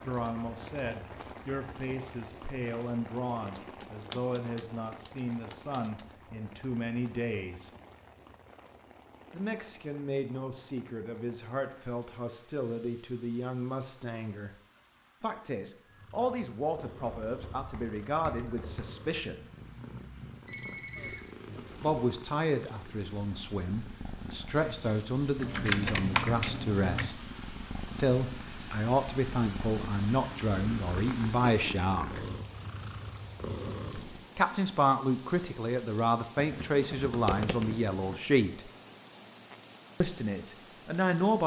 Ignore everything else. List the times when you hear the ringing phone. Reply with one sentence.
You can hear the ringing phone from 20.4 to 21.2 s.